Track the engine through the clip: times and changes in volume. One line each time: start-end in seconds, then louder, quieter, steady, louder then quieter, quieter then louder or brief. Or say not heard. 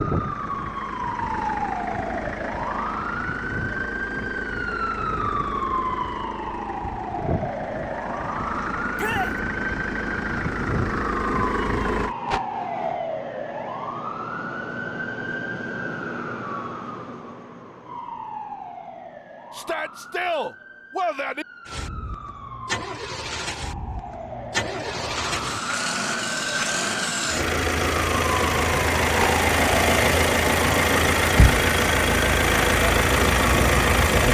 0.0-12.2 louder
21.6-34.2 louder.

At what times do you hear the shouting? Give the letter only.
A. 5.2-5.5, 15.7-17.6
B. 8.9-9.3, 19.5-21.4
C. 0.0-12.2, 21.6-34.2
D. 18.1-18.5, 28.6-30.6
B.